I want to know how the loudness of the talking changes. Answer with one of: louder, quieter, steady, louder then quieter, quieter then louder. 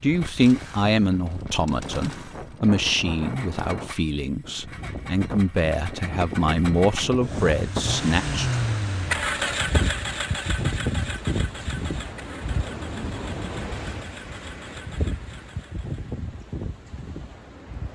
quieter then louder.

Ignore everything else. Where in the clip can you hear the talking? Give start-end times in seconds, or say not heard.
0.0-8.6.